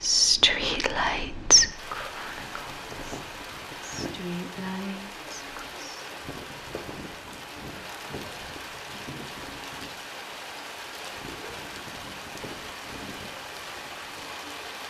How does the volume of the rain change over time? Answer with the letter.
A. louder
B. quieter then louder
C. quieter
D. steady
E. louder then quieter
D.